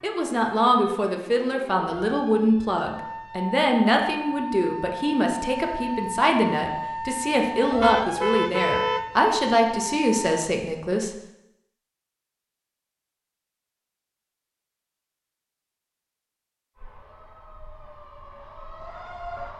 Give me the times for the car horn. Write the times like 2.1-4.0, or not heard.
7.8-9.8.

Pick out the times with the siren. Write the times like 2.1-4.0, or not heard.
0.0-10.4, 16.8-19.5.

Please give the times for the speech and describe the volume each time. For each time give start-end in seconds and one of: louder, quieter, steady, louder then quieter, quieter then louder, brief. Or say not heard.
0.0-11.2 steady.